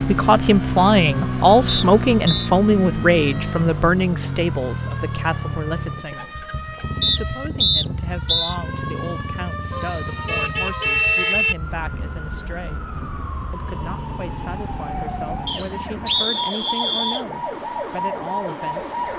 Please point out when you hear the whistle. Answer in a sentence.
You can hear the whistle from 1.6 to 2.5 s, from 7.0 to 8.6 s and from 15.4 to 17.2 s.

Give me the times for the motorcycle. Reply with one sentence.
The motorcycle can be heard from 0.0 to 16.3 s.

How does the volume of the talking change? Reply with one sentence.
The volume of the talking goes down.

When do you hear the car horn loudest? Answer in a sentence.
The volume of the car horn peaks at 11 seconds.